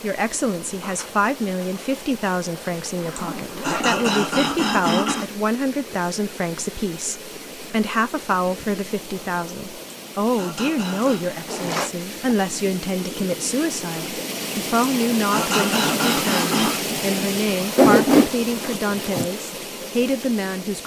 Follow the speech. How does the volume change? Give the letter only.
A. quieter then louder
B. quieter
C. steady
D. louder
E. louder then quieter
C.